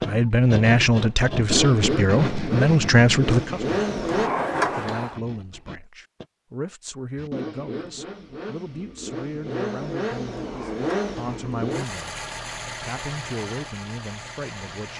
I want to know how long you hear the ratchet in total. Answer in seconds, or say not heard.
not heard.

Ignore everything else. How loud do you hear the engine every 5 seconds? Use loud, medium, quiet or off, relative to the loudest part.
loud, medium, medium.